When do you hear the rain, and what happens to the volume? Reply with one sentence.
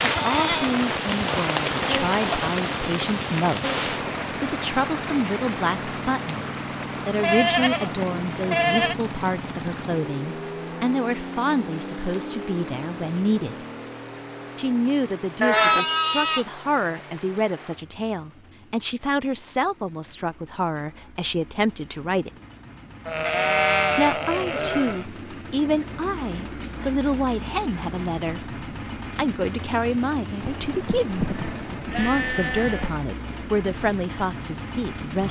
The rain can be heard from 0.0 to 17.9 s, getting quieter.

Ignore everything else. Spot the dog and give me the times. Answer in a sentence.
You can't hear the dog here.